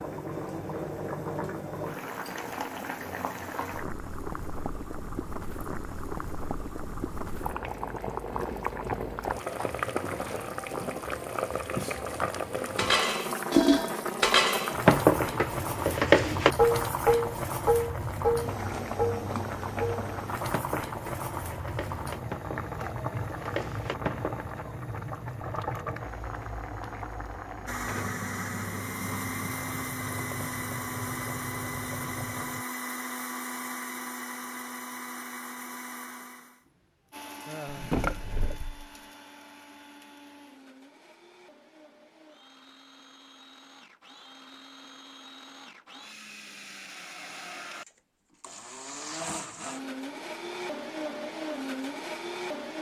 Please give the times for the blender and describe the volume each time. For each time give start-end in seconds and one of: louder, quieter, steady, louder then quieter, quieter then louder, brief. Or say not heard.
27.6-52.7 quieter then louder.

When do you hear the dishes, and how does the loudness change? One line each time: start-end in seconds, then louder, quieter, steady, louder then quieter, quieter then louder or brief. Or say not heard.
12.8-24.6 quieter.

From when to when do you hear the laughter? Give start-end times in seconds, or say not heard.
37.5-38.0.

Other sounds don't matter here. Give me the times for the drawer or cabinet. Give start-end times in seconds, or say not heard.
37.6-38.9.